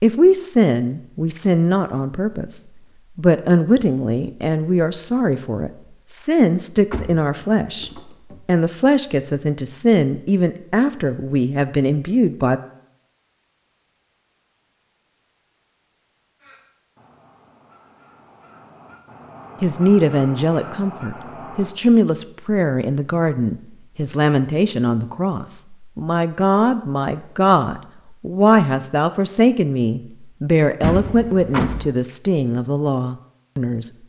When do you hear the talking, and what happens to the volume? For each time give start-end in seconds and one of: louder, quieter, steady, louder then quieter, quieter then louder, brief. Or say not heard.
0.0-12.6 steady
19.6-33.9 steady.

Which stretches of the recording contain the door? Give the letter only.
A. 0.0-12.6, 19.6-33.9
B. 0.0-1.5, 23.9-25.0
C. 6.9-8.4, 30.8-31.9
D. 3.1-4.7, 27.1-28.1
C.